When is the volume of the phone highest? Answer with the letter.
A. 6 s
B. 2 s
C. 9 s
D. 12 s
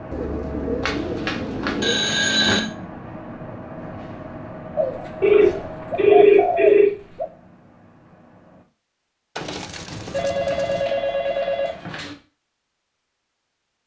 A.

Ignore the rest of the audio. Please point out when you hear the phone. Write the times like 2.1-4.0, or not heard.
0.8-2.6, 5.2-6.9, 10.1-12.2.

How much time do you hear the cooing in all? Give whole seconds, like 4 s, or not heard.
6 s.